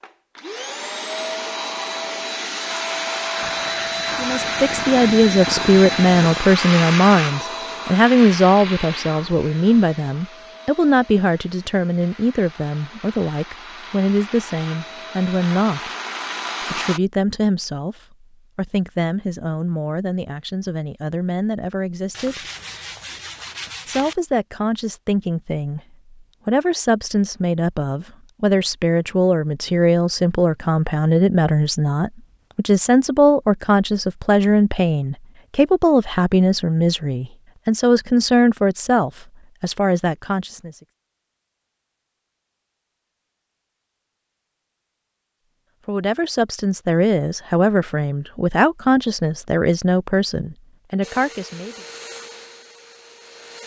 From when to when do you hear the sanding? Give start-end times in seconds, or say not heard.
22.1-24.1.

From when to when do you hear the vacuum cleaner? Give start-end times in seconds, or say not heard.
0.0-17.0, 51.0-53.6.